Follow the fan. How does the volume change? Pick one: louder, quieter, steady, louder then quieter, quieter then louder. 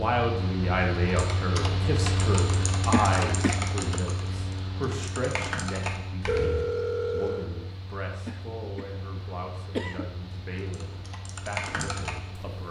quieter.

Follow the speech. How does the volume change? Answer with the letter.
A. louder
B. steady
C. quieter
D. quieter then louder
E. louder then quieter
C.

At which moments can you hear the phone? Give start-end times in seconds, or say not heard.
6.2-7.5.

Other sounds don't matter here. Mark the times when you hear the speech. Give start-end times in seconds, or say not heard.
0.0-12.6.